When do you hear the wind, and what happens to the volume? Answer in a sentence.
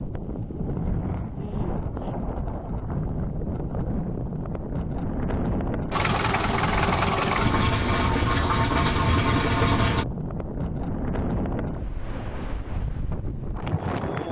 The wind can be heard from 0.0 to 14.2 s, at a steady volume.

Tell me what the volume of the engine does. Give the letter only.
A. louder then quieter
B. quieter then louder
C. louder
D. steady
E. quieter
D.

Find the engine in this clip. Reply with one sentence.
The engine can be heard from 5.9 to 10.1 s.